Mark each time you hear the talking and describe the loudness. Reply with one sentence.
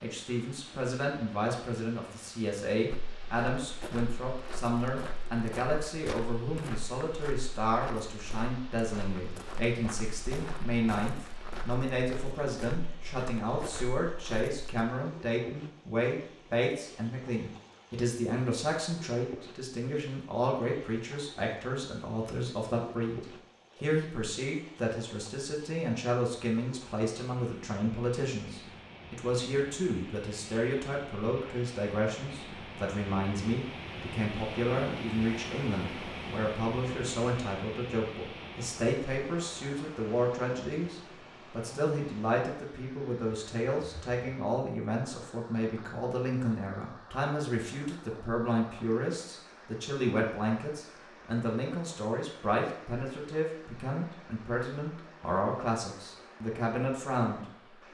You can hear the talking from 0.0 to 57.5 s, at a steady volume.